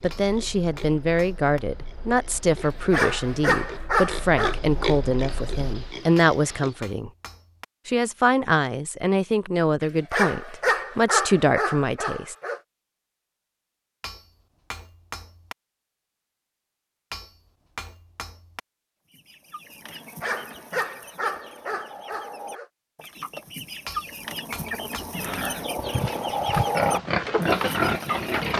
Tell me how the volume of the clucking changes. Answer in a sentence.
The loudness of the clucking goes up.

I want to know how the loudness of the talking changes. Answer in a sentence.
The loudness of the talking stays about the same.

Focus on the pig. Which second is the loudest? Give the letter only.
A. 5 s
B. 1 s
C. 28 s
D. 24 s
C.